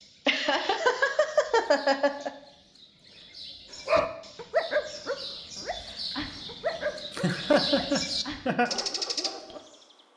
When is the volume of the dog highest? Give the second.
5 s.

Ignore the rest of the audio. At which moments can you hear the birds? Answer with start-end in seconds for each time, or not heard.
0.0-9.9.